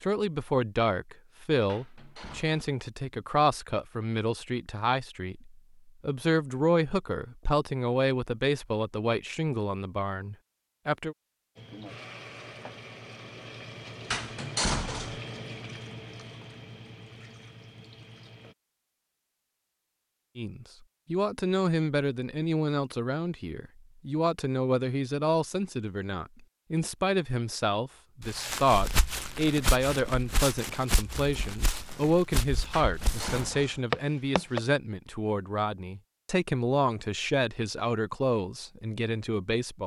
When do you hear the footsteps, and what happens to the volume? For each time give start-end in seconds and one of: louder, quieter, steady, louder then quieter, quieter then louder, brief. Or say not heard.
28.2-34.6 quieter then louder.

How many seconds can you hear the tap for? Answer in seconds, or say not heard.
7 s.